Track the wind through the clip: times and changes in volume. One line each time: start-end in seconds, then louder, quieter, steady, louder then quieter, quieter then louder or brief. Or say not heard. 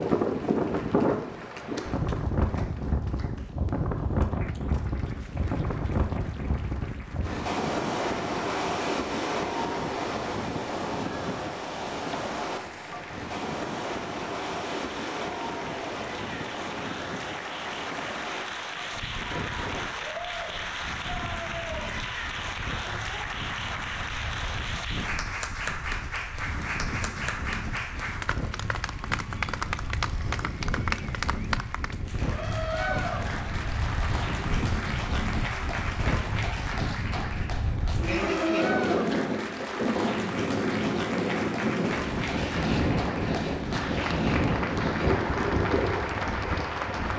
0.0-47.1 quieter then louder.